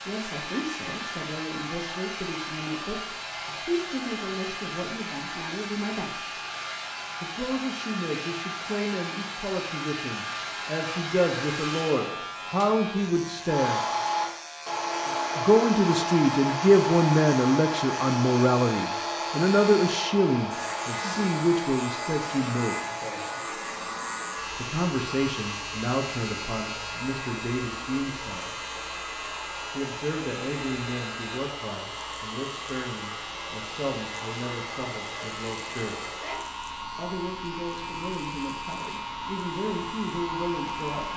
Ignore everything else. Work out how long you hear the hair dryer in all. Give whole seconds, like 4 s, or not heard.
41 s.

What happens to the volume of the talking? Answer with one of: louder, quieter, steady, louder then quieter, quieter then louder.
louder then quieter.